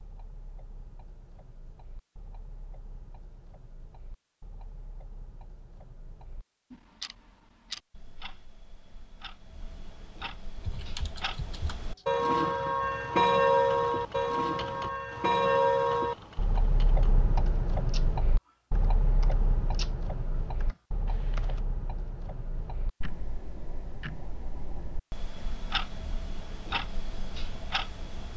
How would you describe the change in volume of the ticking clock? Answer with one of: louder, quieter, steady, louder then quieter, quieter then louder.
louder then quieter.